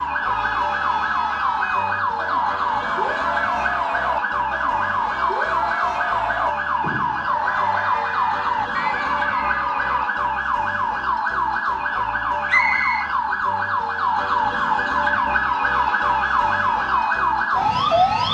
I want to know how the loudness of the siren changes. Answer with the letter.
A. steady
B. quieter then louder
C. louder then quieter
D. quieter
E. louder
A.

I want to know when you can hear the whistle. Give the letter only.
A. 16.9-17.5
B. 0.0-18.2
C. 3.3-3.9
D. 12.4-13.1
D.